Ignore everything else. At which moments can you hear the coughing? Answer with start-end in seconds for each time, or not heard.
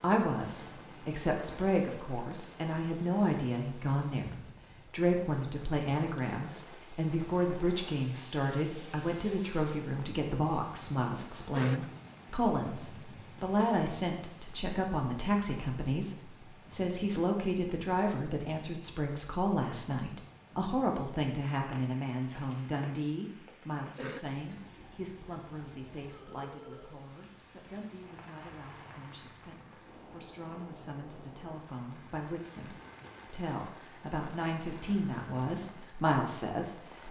11.5-11.9, 23.9-24.4.